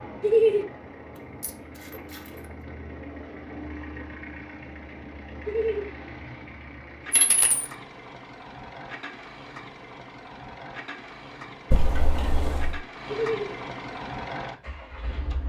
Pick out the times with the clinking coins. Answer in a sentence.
The clinking coins can be heard from 1.4 to 2.3 s, from 7.1 to 7.7 s and from 11.7 to 12.8 s.